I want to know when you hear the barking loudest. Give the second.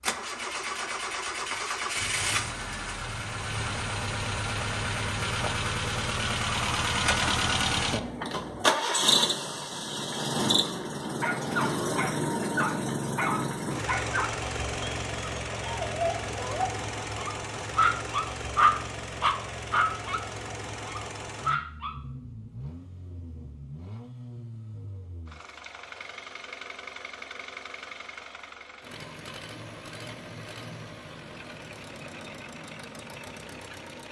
19 s.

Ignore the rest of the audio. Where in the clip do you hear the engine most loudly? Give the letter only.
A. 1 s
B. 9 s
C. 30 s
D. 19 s
B.